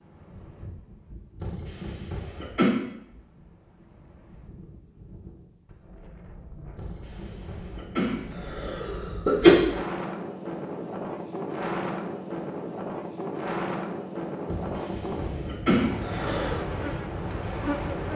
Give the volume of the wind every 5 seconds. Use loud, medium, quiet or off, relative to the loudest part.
quiet, medium, loud, loud.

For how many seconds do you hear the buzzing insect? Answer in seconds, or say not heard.
2 s.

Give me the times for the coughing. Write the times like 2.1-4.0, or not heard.
1.4-2.7, 6.8-9.6, 14.4-16.6.